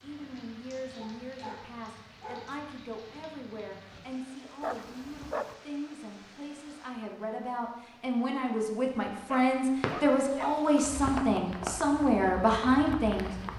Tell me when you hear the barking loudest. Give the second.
5 s.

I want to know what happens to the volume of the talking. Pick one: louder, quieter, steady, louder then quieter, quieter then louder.
louder.